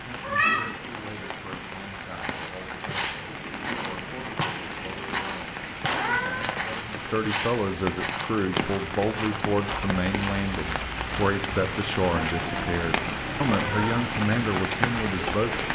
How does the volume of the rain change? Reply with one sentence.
The loudness of the rain goes up.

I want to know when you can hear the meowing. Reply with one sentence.
The meowing can be heard from 0.2 to 0.8 s, from 5.8 to 6.5 s and from 12.0 to 13.9 s.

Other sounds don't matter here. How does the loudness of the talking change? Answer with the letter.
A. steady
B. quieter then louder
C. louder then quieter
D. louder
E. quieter
D.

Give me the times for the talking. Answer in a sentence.
The talking can be heard from 0.0 to 15.7 s.